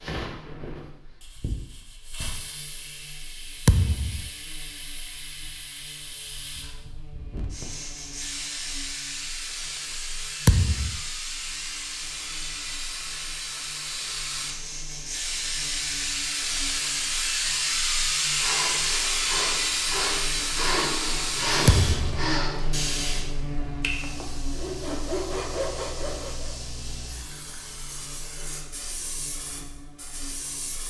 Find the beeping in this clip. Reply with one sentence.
The beeping can't be heard in this clip.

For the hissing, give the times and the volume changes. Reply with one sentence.
You can hear the hissing from 0.0 to 30.8 s, getting louder then quieter.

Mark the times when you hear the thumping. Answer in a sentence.
The thumping can be heard from 3.6 to 4.3 s, from 10.4 to 11.0 s and from 21.6 to 22.1 s.